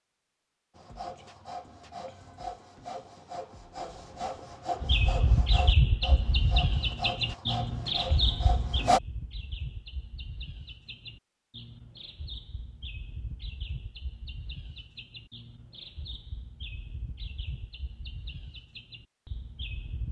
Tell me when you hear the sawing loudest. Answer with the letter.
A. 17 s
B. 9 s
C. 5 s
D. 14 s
B.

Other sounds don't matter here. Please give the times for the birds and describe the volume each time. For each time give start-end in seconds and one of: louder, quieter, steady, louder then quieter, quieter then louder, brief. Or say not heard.
4.8-20.0 quieter.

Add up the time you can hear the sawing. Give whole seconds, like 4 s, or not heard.
8 s.